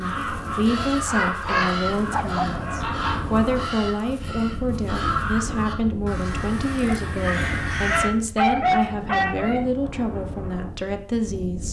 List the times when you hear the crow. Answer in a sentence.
The crow can be heard from 0.0 to 8.1 s.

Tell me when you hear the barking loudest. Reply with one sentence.
The loudest moment of the barking is at 9 seconds.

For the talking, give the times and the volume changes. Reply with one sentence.
The talking can be heard from 0.0 to 11.6 s, at a steady volume.